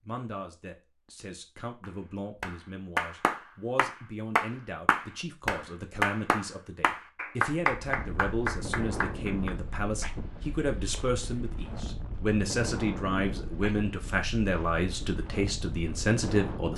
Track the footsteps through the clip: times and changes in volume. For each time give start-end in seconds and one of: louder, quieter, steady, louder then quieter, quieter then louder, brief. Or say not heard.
not heard.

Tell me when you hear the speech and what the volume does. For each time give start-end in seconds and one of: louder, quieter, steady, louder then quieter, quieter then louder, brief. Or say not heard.
0.0-16.7 louder.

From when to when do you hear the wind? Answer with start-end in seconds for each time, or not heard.
7.7-16.7.